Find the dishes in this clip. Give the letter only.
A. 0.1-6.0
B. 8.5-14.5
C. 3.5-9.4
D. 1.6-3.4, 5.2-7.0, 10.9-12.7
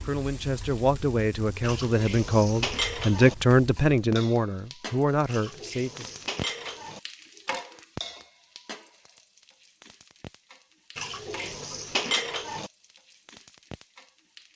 D.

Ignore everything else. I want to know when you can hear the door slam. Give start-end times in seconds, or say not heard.
not heard.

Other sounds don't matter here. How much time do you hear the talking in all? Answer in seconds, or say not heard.
6 s.